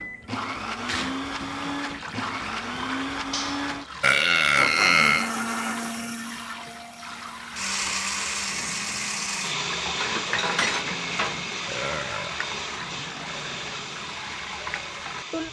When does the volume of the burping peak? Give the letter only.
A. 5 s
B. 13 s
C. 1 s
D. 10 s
A.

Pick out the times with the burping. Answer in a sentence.
You can hear the burping from 4.0 to 5.3 s and from 11.7 to 12.4 s.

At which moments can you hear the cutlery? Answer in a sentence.
The cutlery can be heard from 3.3 to 3.7 s and from 9.9 to 11.4 s.